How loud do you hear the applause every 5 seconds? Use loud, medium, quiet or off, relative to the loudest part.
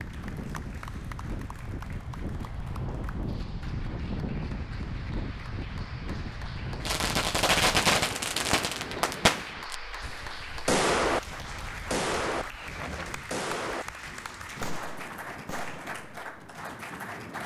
medium, loud, loud, loud.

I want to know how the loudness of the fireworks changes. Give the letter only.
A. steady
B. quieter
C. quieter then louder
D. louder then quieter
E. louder
B.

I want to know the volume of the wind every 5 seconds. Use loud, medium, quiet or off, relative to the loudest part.
loud, loud, medium, medium.